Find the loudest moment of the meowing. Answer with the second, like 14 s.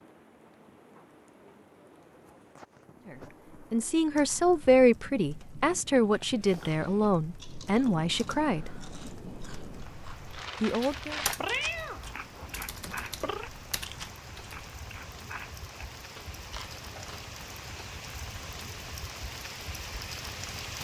12 s.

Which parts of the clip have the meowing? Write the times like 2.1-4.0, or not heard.
11.3-13.5.